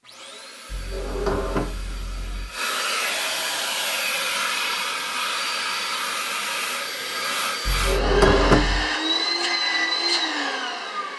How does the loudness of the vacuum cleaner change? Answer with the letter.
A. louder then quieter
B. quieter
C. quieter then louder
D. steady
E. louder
E.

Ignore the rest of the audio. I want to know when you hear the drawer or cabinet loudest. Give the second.
8 s.